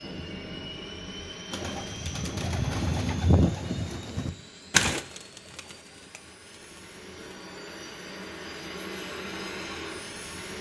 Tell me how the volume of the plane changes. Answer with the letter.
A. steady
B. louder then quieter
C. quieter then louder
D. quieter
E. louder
C.